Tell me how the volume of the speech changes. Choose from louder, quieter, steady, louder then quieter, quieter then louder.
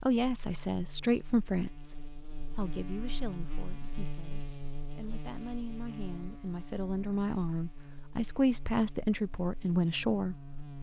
quieter then louder.